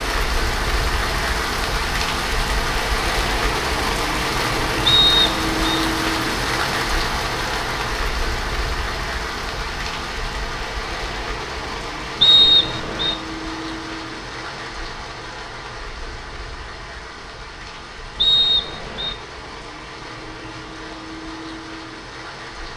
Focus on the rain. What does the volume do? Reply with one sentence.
The volume of the rain goes down.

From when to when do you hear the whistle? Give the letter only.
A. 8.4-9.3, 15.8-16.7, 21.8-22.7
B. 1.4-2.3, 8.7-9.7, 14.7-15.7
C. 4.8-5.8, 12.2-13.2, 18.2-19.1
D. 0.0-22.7
C.